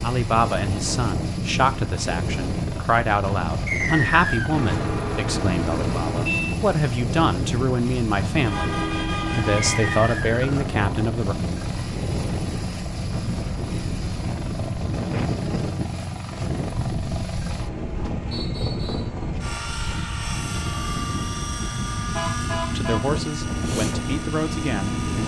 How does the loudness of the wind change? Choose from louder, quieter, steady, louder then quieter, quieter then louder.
steady.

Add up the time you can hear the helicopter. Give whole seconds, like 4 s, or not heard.
25 s.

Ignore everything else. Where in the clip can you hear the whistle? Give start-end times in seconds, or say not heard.
3.6-4.5, 9.6-10.4, 18.3-19.1.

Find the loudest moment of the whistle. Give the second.
4 s.